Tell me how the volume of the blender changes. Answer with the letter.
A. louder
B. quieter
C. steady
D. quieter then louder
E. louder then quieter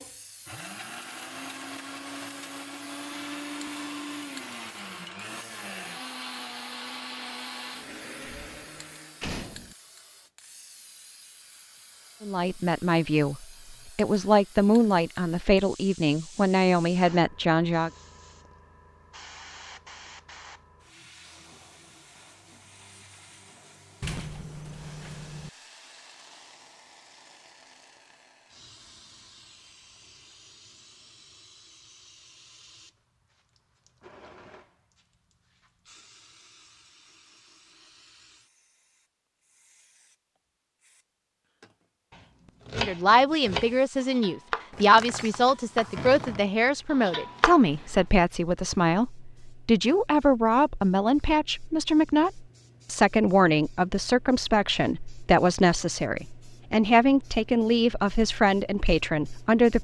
C.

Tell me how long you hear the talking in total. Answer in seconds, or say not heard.
23 s.